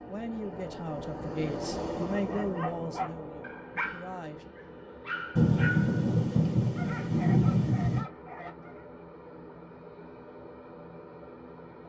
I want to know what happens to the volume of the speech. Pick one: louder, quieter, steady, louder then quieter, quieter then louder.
louder then quieter.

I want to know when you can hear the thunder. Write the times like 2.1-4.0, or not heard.
5.3-8.1.